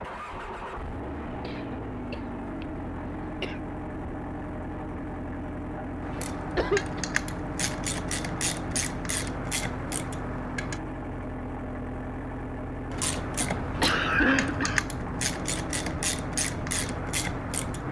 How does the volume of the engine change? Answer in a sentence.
The loudness of the engine stays about the same.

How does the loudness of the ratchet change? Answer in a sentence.
The volume of the ratchet stays about the same.